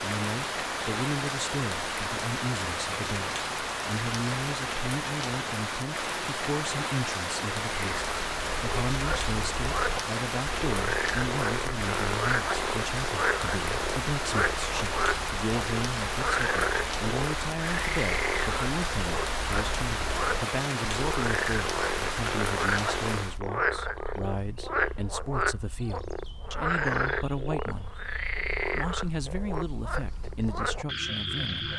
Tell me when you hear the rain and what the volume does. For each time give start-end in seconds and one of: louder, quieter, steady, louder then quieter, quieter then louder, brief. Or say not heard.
0.0-23.4 steady.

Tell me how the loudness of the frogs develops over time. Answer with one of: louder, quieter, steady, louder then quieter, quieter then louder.
steady.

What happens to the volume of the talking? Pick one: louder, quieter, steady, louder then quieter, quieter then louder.
steady.